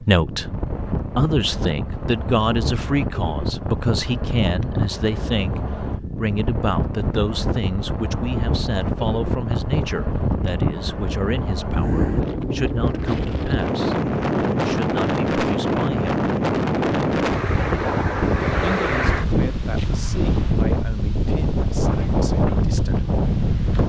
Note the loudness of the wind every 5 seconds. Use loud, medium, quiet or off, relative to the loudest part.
medium, medium, loud, loud, loud.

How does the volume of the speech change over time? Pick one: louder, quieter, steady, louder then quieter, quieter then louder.
quieter.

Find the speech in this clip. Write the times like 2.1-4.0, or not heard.
0.0-16.2, 18.4-23.1.